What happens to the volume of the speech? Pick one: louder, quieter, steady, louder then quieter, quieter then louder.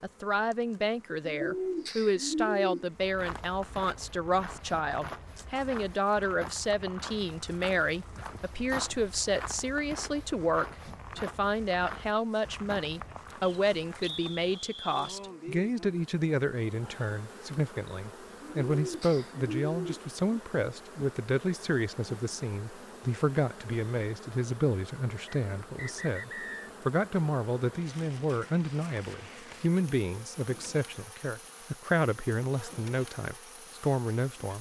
steady.